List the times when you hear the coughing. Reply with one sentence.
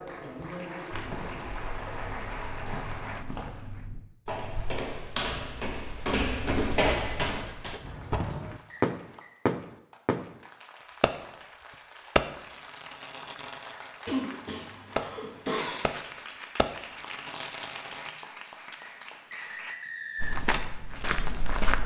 The coughing can be heard from 14.1 to 15.9 s.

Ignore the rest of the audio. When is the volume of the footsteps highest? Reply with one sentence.
The volume of the footsteps peaks at 7 seconds.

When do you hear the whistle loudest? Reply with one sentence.
The volume of the whistle peaks at 20 seconds.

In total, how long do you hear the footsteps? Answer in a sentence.
You can hear the footsteps for 9 seconds altogether.